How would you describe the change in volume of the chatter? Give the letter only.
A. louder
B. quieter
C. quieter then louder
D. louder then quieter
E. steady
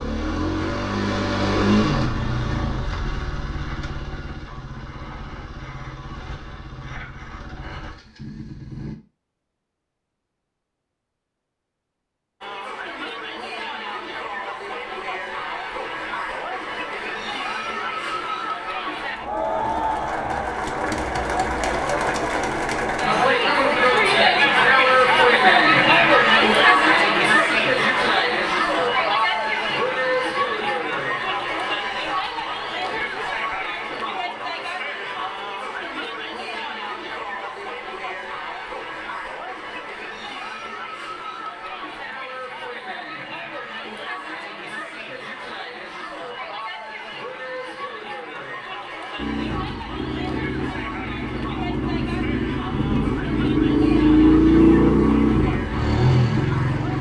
D.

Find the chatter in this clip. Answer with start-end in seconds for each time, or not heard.
12.4-56.9.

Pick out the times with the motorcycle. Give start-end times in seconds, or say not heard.
0.0-8.9, 49.1-56.9.